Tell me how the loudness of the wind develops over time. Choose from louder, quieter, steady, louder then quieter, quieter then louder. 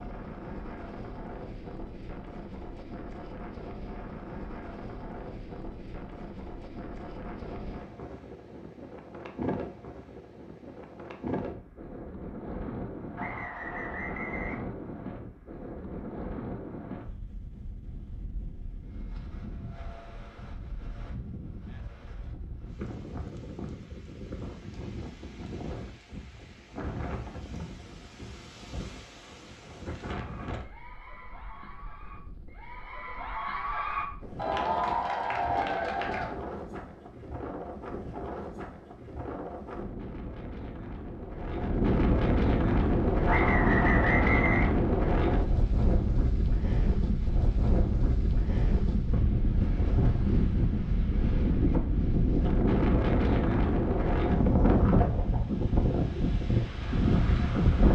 louder.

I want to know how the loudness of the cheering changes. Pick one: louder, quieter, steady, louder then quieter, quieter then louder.
louder.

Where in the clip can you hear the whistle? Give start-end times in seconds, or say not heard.
13.2-14.7, 43.2-44.8.